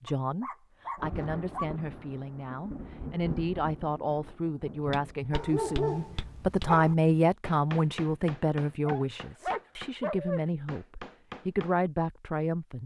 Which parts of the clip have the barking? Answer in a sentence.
The barking can be heard from 0.1 to 1.6 s, from 5.3 to 7.0 s and from 8.8 to 10.4 s.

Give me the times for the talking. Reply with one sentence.
You can hear the talking from 0.1 to 12.8 s.